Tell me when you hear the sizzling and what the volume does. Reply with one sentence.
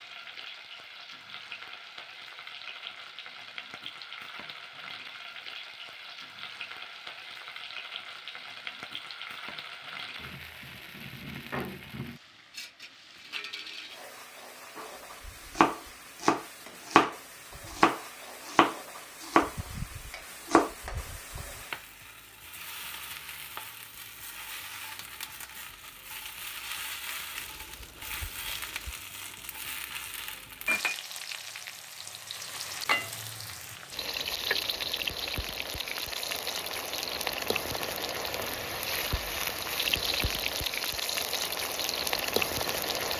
The sizzling can be heard from 0.0 to 43.1 s, getting louder.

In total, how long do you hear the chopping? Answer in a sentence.
You can hear the chopping for 7 seconds altogether.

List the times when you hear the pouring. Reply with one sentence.
You can hear the pouring from 27.4 to 28.9 s.